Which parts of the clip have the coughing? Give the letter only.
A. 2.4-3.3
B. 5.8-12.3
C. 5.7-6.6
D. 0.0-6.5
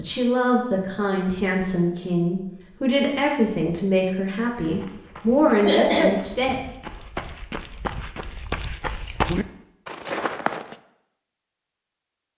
C.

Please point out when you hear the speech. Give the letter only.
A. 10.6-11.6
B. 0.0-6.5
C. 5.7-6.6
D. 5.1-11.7
B.